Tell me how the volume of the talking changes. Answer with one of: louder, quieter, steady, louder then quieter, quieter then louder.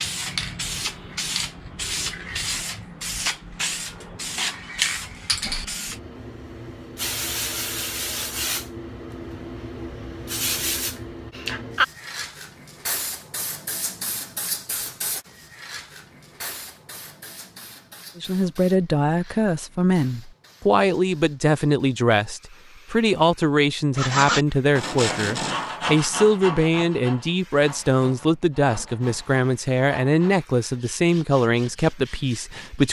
steady.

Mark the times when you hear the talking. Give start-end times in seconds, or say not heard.
18.1-32.8.